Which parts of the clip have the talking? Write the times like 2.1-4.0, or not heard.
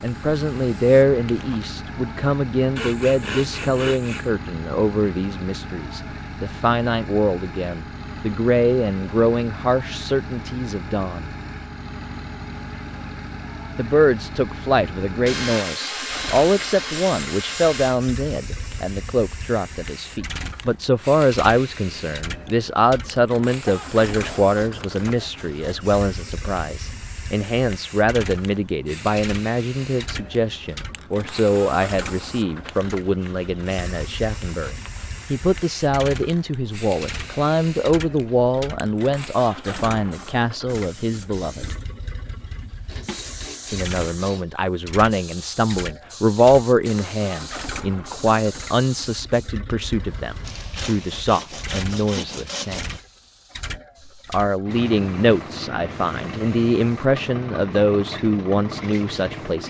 0.0-11.3, 13.8-41.8, 43.7-53.0, 54.2-59.6.